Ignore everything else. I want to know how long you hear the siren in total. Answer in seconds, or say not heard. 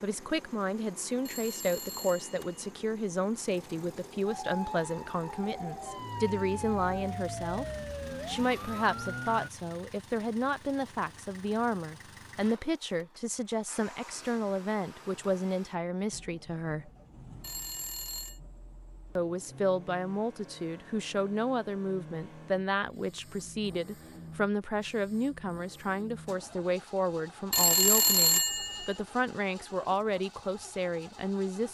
5 s.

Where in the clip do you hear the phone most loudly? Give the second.
28 s.